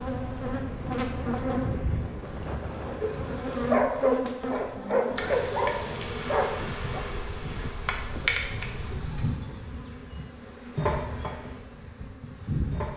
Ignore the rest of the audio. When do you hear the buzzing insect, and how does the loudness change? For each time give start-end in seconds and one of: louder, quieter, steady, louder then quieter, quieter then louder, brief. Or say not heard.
0.0-12.9 steady.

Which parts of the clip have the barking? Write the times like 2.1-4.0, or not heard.
1.6-7.0.